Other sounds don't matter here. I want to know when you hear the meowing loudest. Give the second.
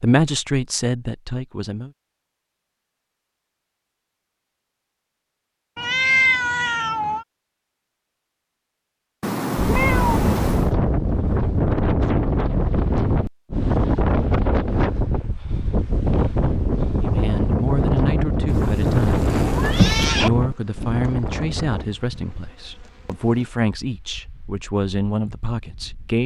6 s.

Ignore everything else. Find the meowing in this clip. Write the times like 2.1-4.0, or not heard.
5.8-7.2, 9.2-10.7, 19.4-20.3.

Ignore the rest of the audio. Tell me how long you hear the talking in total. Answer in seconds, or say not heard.
10 s.